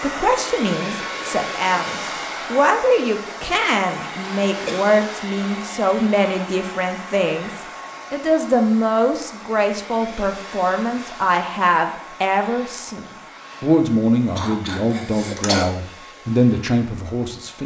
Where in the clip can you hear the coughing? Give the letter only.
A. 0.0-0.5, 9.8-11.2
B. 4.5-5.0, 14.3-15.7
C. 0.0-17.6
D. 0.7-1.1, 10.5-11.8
B.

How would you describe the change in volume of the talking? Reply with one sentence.
The loudness of the talking stays about the same.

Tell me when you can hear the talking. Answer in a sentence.
The talking can be heard from 0.0 to 17.6 s.